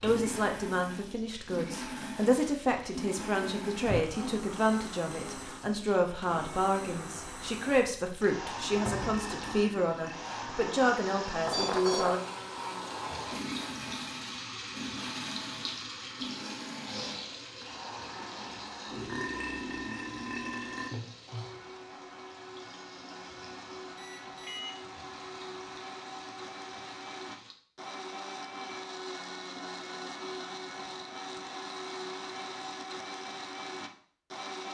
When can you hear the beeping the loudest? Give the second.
12 s.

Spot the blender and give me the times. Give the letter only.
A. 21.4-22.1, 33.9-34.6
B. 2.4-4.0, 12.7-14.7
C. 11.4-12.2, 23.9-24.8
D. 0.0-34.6
D.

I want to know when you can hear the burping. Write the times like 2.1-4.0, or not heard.
8.7-10.2, 18.9-20.9.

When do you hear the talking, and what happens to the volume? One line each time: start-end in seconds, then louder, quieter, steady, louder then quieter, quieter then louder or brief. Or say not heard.
0.0-12.2 steady.